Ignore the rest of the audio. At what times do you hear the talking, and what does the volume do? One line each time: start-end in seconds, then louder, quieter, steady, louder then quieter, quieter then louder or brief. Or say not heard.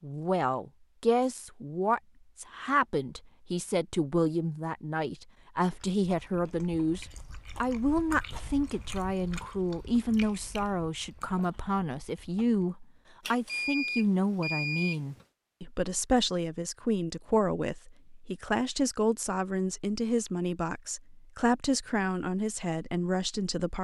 0.0-23.7 steady.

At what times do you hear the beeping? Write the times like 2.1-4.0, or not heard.
13.2-15.2.